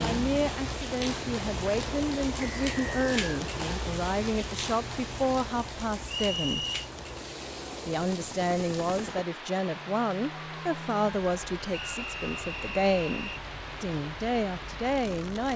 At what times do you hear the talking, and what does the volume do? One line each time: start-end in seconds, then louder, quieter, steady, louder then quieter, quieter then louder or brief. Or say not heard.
0.0-6.7 steady
7.8-15.5 steady.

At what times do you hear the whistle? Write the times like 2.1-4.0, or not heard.
2.4-3.2, 6.0-6.8, 11.7-13.4.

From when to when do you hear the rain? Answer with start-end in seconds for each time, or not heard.
0.0-15.5.